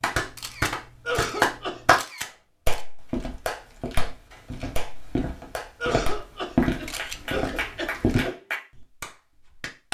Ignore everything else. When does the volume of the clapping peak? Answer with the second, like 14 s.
2 s.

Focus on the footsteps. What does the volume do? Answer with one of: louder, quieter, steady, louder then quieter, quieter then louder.
louder then quieter.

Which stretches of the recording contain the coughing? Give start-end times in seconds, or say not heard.
1.1-1.9, 5.8-8.3.